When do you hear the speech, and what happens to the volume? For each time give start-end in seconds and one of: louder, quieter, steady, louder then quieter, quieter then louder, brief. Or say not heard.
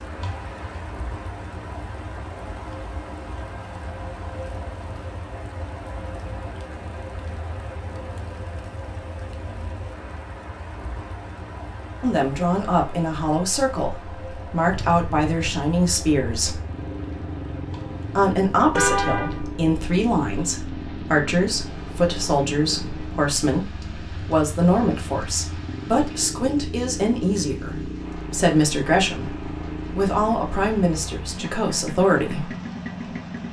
12.0-16.6 steady
18.1-32.5 steady.